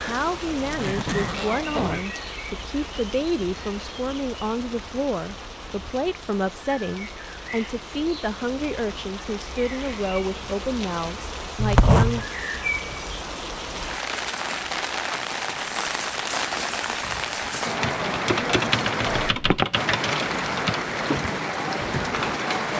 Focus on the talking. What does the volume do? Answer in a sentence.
The volume of the talking stays about the same.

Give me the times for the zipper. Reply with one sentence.
You can hear the zipper from 0.6 to 2.0 s, from 11.6 to 12.2 s and from 19.2 to 19.6 s.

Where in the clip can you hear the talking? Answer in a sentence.
The talking can be heard from 0.1 to 12.2 s.